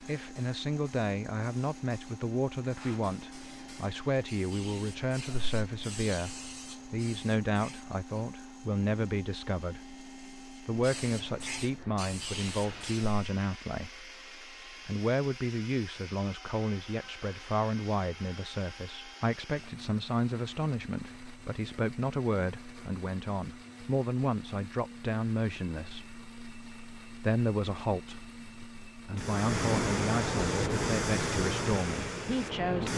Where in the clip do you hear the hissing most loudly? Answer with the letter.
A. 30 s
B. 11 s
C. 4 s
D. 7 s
A.